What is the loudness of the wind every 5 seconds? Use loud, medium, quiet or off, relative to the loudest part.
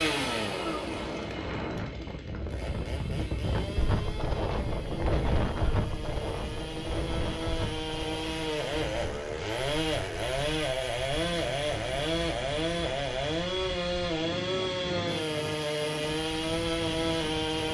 loud, loud, medium, medium.